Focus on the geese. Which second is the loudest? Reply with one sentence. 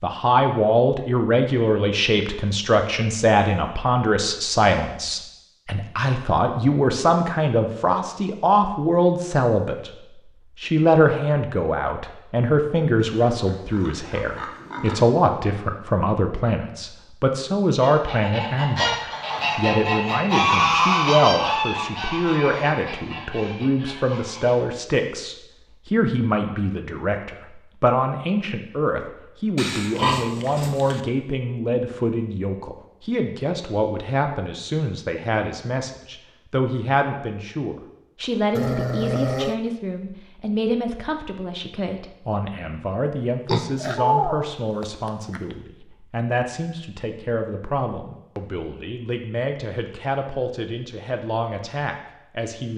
The volume of the geese peaks at 21 seconds.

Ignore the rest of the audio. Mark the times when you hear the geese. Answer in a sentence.
You can hear the geese from 17.8 to 24.6 s.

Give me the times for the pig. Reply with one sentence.
The pig can be heard from 13.2 to 15.1 s, from 29.6 to 31.0 s and from 43.5 to 45.5 s.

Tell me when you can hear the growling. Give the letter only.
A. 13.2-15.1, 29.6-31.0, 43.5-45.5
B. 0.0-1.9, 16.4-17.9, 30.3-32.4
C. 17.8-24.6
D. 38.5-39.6
D.